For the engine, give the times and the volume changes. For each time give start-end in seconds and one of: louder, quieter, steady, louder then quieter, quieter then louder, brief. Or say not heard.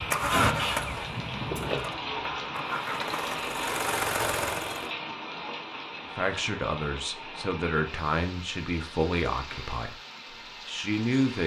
0.0-4.9 quieter then louder.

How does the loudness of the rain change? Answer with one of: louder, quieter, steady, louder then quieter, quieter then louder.
quieter.